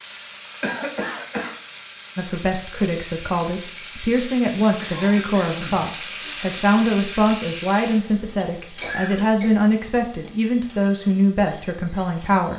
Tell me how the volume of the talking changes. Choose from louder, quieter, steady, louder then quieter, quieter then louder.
steady.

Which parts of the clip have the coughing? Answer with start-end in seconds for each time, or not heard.
0.6-1.5, 4.6-6.3, 8.7-9.5.